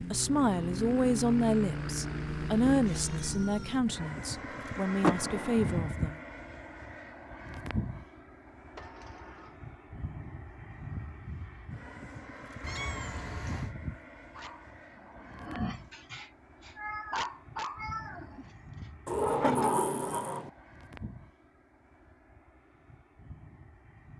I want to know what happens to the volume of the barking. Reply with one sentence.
The loudness of the barking goes up, then down.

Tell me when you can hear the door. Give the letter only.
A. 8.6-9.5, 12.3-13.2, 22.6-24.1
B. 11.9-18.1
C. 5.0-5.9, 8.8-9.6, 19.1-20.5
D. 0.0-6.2
C.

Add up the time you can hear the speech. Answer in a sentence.
The speech can be heard for 6 seconds in total.